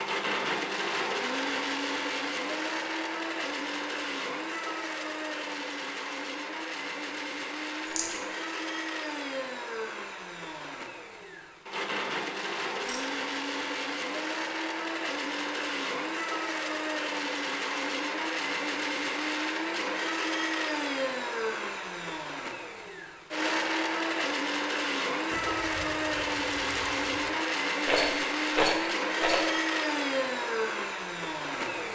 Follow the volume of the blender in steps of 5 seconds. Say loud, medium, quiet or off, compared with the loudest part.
loud, medium, medium, loud, loud, loud, loud.